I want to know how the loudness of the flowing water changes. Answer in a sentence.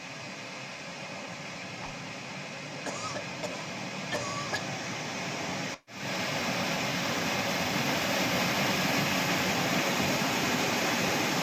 The volume of the flowing water goes up.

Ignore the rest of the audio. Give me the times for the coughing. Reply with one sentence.
The coughing can be heard from 2.9 to 4.7 s.